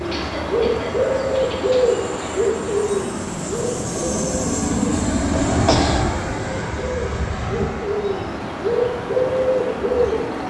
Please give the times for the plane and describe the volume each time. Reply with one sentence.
You can hear the plane from 0.0 to 10.4 s, getting louder then quieter.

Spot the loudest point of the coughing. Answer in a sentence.
The loudest moment of the coughing is at 6 seconds.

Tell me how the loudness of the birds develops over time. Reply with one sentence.
The loudness of the birds goes down, then up.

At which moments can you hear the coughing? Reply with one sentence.
You can hear the coughing from 0.1 to 2.0 s and from 5.2 to 6.0 s.